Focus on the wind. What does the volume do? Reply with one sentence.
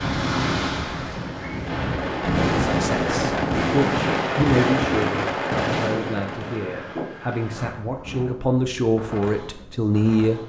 The loudness of the wind goes down.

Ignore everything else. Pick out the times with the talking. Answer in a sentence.
You can hear the talking from 2.6 to 10.4 s.